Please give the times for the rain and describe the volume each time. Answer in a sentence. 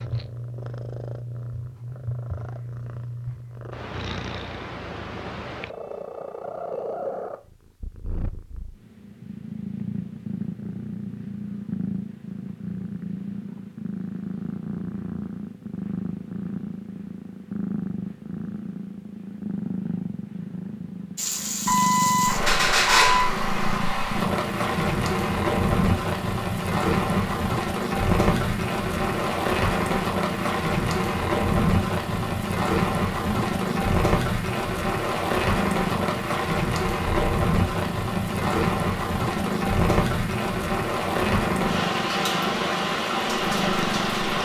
You can hear the rain from 21.1 to 44.4 s, at a steady volume.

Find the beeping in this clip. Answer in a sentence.
You can hear the beeping from 21.6 to 23.3 s.